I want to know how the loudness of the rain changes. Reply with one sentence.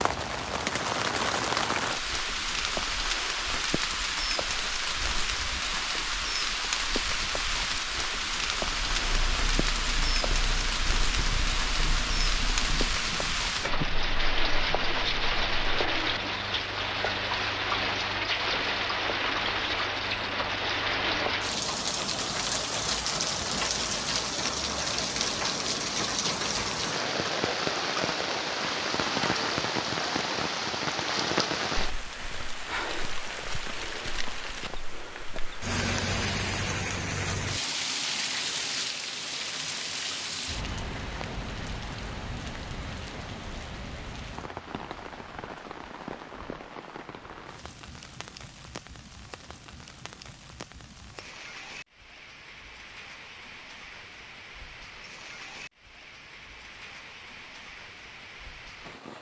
The volume of the rain goes down.